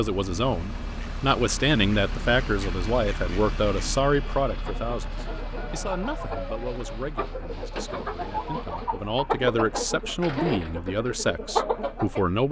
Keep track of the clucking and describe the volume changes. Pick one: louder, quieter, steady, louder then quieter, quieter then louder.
louder.